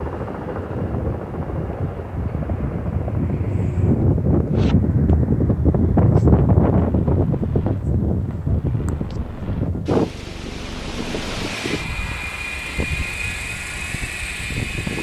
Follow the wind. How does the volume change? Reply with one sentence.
The volume of the wind goes up, then down.